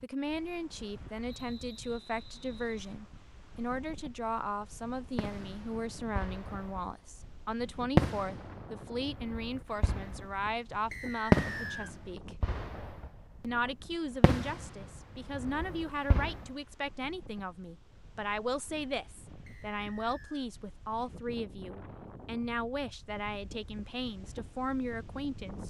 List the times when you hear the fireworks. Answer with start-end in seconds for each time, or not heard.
5.2-6.8, 8.0-10.5, 11.3-13.1, 14.2-16.4.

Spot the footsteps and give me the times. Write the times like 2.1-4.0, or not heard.
not heard.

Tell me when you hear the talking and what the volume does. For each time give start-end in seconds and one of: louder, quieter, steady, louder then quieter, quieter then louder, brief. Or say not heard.
0.0-12.3 steady
13.4-25.6 steady.